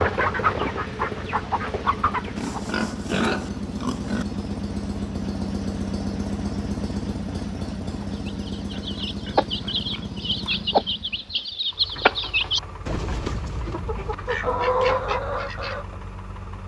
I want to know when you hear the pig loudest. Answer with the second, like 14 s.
3 s.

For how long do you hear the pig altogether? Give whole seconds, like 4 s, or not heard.
4 s.